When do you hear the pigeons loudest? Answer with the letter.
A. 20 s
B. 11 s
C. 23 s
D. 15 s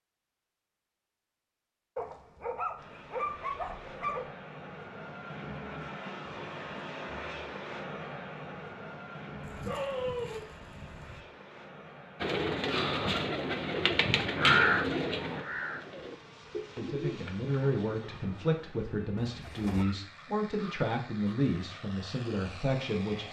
D.